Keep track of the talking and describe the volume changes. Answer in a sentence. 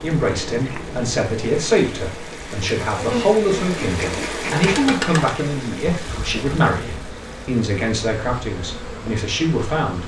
The loudness of the talking stays about the same.